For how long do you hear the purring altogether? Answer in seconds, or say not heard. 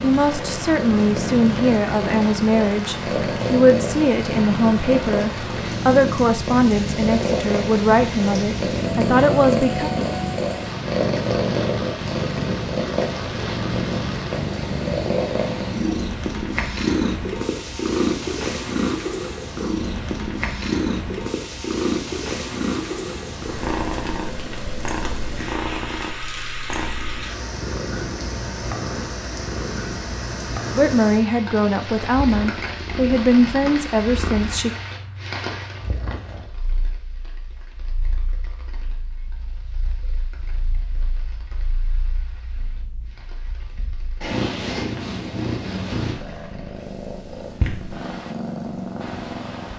50 s.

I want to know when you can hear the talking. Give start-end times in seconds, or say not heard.
0.0-9.9, 30.8-34.7.